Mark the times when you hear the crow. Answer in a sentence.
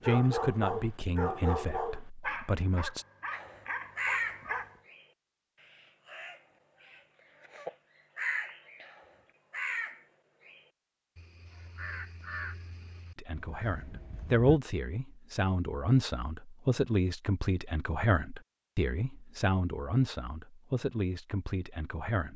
The crow can be heard from 3.3 to 14.6 s.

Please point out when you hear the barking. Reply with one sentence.
You can hear the barking from 0.0 to 4.8 s.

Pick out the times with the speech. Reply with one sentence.
You can hear the speech from 0.1 to 3.0 s and from 13.2 to 22.3 s.